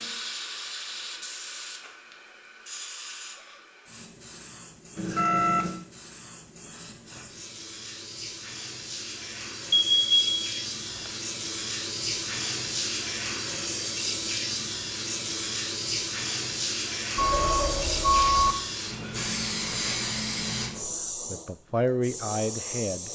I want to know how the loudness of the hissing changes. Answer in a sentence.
The loudness of the hissing goes up.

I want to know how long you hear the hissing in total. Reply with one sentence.
The hissing can be heard for 23 seconds in total.